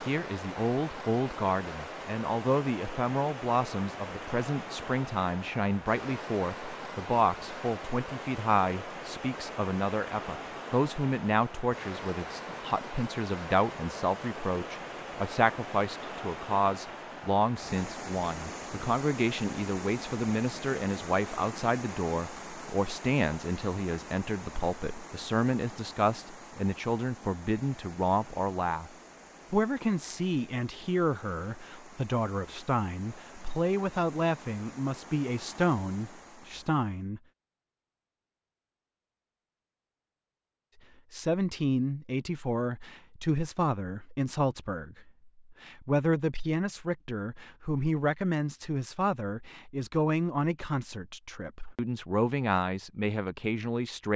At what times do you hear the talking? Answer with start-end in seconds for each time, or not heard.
0.0-28.9, 29.5-37.2, 41.1-54.1.